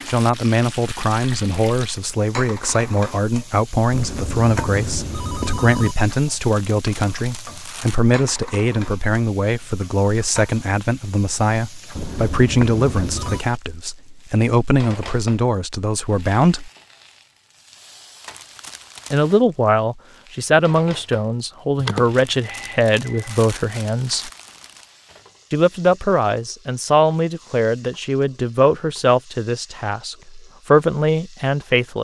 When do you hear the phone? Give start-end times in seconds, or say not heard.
3.9-6.0, 11.9-13.4, 21.8-23.4.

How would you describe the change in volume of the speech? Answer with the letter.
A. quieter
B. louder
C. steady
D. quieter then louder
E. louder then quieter
C.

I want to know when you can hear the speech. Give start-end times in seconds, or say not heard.
0.1-16.7, 19.1-24.3, 25.5-32.0.